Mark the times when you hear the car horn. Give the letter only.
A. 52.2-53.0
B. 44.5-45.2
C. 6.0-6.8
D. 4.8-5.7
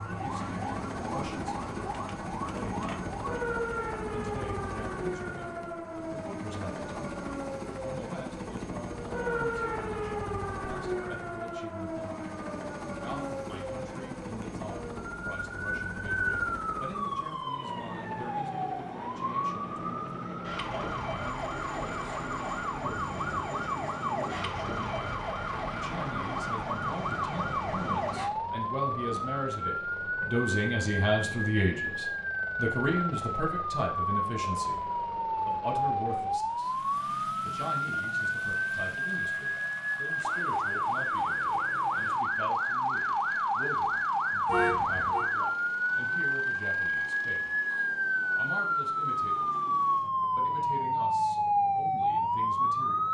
B.